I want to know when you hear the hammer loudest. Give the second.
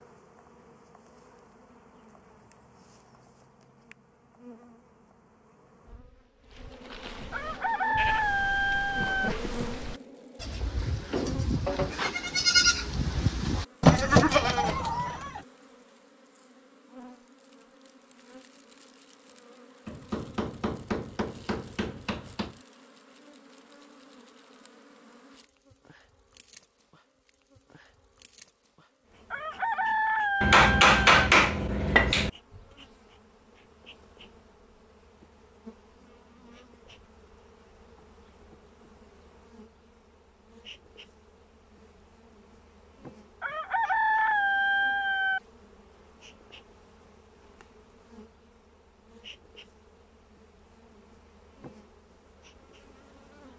31 s.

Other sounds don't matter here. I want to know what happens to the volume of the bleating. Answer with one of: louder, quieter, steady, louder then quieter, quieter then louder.
louder.